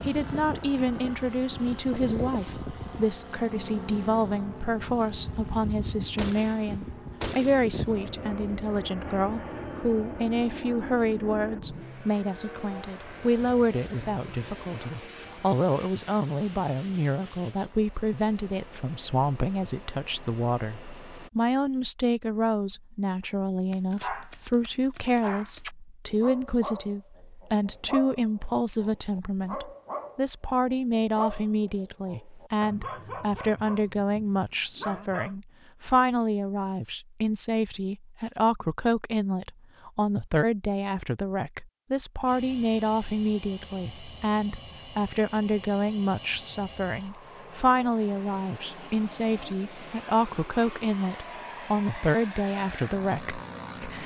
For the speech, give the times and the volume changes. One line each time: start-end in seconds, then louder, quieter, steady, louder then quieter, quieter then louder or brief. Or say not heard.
0.0-54.0 steady.